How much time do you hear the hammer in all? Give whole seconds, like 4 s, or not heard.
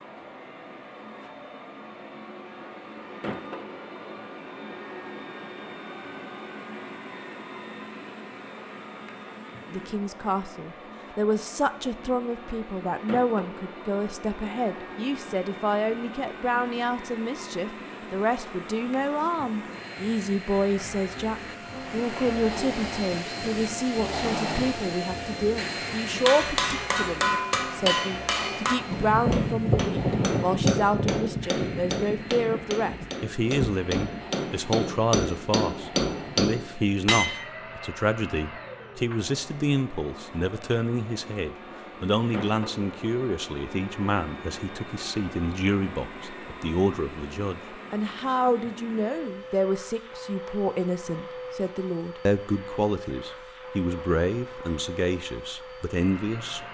11 s.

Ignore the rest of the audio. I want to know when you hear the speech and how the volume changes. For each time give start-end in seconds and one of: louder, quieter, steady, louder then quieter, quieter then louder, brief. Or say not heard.
9.7-56.6 steady.